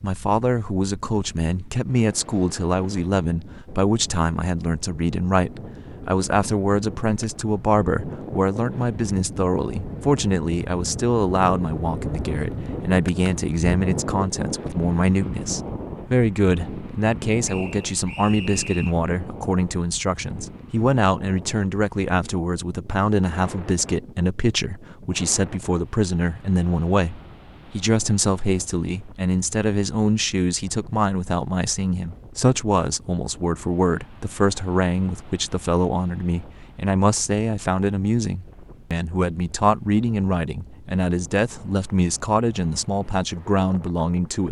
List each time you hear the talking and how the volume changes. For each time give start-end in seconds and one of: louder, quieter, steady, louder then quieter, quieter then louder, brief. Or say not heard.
0.0-44.4 steady.